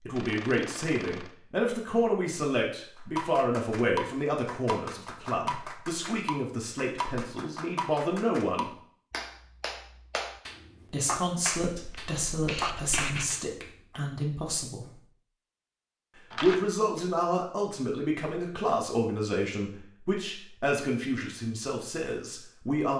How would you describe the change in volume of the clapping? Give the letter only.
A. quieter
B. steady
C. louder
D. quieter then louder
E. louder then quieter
B.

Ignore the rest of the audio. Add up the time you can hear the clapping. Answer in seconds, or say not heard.
11 s.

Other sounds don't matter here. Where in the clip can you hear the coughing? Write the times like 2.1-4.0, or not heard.
not heard.